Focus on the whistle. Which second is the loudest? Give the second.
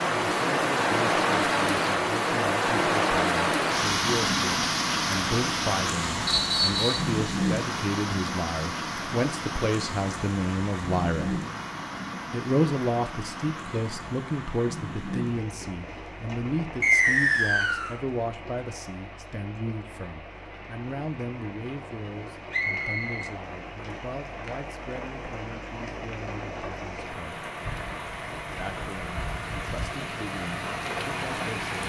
17 s.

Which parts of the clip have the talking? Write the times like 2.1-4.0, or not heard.
0.2-11.4, 12.3-27.5, 28.6-31.8.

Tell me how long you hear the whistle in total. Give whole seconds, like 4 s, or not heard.
3 s.